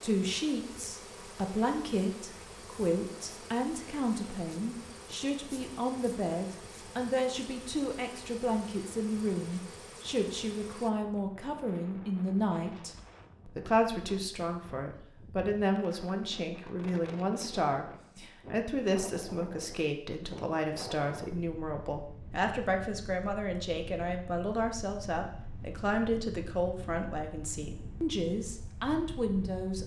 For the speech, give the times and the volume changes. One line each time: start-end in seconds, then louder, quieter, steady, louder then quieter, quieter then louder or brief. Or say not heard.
0.0-29.8 steady.